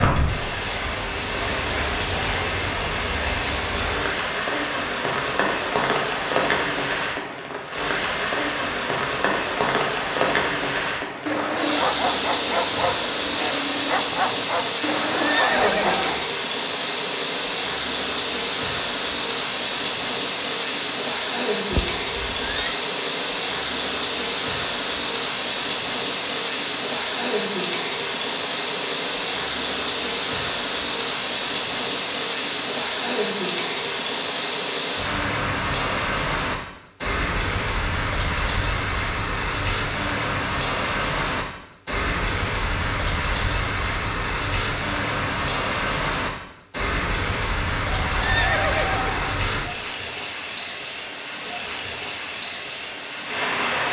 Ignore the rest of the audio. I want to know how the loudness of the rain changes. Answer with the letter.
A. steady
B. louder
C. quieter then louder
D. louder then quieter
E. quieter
A.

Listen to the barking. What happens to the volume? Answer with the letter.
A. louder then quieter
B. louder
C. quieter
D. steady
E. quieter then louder
D.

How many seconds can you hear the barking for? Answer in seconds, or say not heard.
5 s.